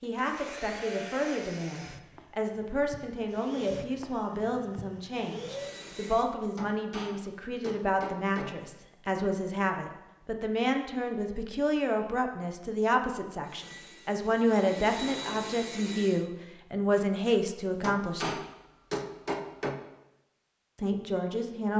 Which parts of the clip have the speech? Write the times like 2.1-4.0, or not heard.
0.0-18.4, 20.8-21.7.